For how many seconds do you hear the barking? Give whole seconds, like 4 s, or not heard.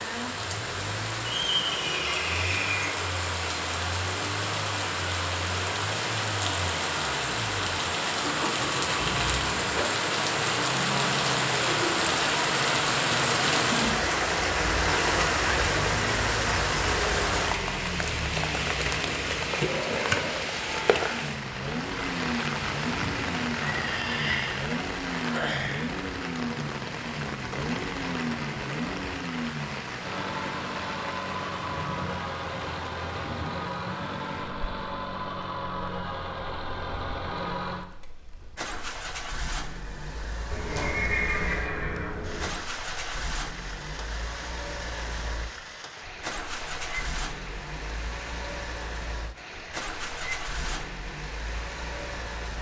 not heard.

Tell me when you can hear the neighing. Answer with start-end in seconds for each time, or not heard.
1.2-2.9, 23.6-24.6, 40.5-42.5.